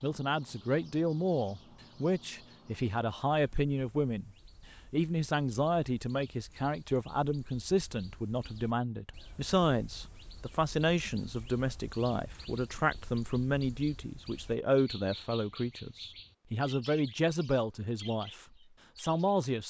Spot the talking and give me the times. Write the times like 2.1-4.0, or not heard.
0.0-4.3, 4.9-19.6.